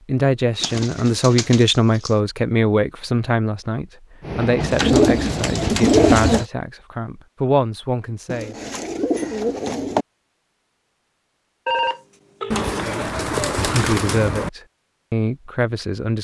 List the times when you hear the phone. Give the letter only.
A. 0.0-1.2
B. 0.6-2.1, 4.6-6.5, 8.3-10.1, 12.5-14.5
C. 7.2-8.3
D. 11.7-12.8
D.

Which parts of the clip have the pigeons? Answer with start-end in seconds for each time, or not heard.
0.6-2.1, 4.6-6.5, 8.3-10.1, 12.5-14.5.